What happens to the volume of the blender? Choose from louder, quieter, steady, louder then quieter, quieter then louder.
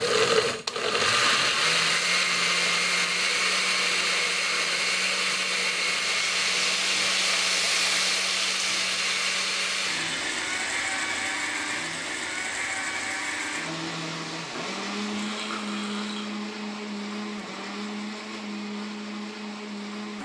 quieter.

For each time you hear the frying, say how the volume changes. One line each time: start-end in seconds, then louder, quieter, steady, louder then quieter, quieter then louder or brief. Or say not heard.
6.0-16.4 quieter.